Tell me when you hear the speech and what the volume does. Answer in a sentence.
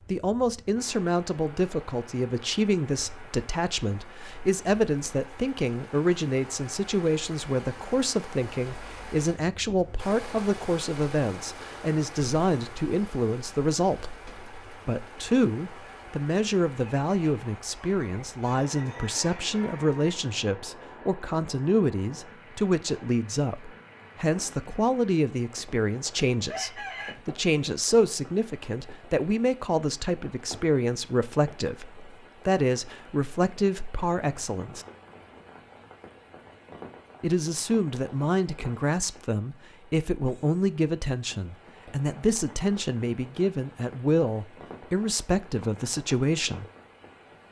You can hear the speech from 0.1 to 14.2 s, at a steady volume; from 14.8 to 34.9 s, at a steady volume; and from 37.2 to 46.6 s, at a steady volume.